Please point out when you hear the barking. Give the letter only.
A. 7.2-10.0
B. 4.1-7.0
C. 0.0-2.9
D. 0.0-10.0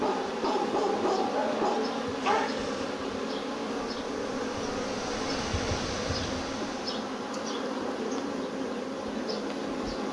C.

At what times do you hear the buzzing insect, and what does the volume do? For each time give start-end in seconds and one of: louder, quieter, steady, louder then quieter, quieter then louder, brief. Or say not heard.
0.0-10.0 steady.